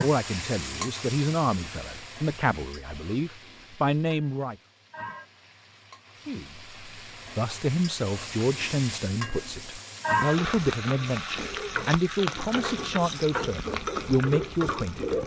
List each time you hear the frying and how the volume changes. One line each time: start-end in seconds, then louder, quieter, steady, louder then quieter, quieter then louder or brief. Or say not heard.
0.0-15.2 quieter then louder.